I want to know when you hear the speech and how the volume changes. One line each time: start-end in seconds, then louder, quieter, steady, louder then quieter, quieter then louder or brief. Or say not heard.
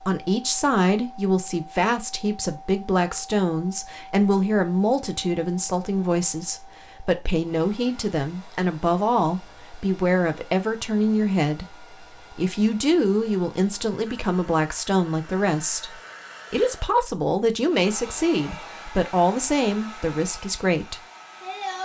0.0-21.0 steady.